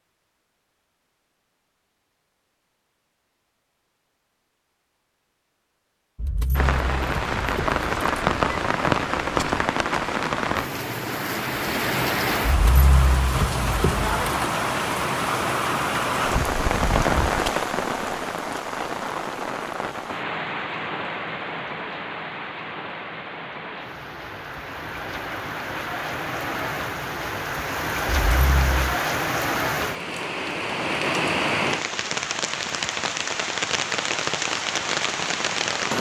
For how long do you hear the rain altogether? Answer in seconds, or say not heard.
29 s.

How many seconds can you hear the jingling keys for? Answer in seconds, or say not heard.
5 s.